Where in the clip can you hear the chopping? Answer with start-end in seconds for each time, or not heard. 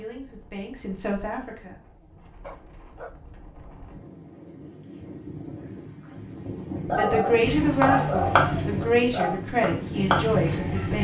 7.4-10.9.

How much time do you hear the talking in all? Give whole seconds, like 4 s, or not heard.
6 s.